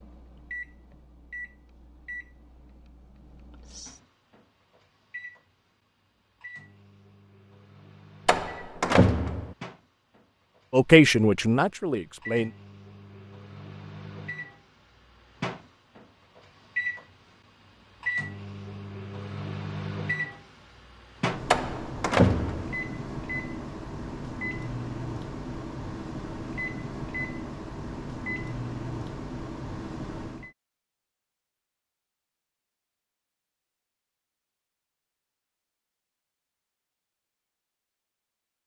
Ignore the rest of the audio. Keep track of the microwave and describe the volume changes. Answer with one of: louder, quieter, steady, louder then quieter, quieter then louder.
louder.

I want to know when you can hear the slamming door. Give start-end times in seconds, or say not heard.
8.2-9.6, 21.5-22.8.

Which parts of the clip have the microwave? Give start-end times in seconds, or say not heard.
0.0-30.5.